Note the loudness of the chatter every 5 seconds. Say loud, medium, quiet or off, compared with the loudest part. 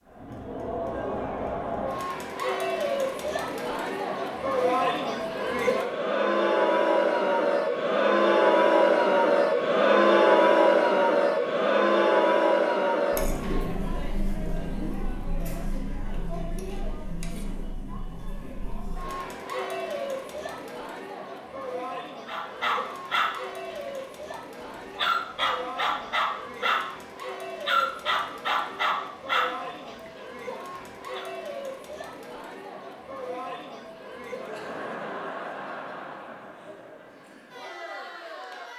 medium, loud, loud, quiet, quiet, quiet, quiet, quiet.